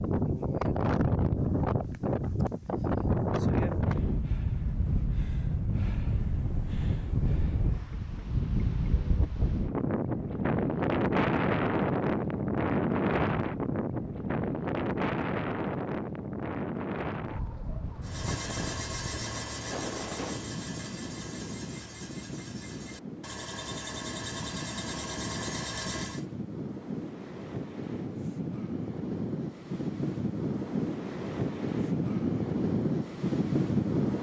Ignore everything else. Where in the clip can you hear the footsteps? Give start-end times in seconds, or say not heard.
not heard.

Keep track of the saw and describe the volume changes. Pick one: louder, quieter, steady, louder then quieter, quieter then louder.
quieter then louder.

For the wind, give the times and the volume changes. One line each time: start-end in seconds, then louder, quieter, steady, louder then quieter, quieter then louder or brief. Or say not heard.
0.0-34.1 quieter then louder.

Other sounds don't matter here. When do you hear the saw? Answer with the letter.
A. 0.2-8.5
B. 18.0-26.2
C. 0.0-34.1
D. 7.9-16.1
B.